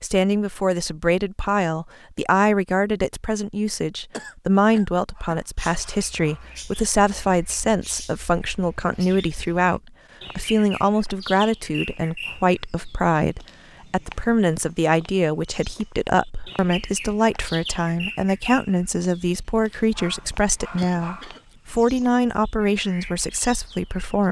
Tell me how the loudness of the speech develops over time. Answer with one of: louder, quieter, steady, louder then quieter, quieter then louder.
steady.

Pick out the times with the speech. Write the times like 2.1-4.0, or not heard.
0.0-24.2.